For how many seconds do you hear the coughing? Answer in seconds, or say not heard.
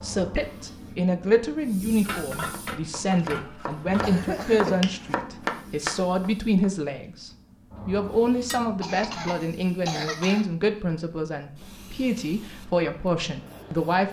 3 s.